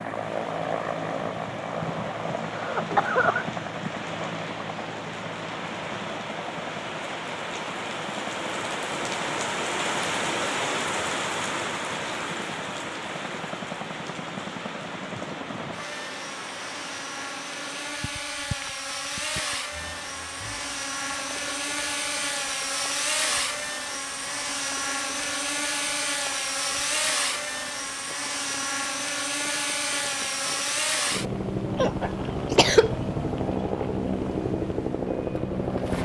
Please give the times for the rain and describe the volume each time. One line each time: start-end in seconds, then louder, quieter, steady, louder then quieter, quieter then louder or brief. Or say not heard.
0.0-35.9 louder then quieter.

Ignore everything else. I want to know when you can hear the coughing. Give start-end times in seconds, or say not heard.
2.5-3.5, 31.8-33.0.